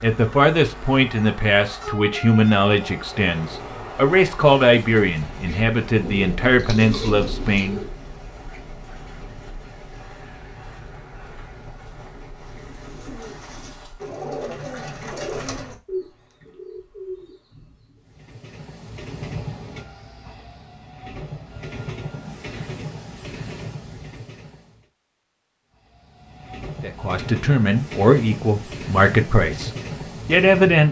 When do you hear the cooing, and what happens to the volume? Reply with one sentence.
The cooing can be heard briefly from 5.3 to 7.9 s; and from 12.6 to 18.0 s, getting louder then quieter.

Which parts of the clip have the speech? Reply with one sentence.
The speech can be heard from 0.0 to 7.8 s and from 26.8 to 30.8 s.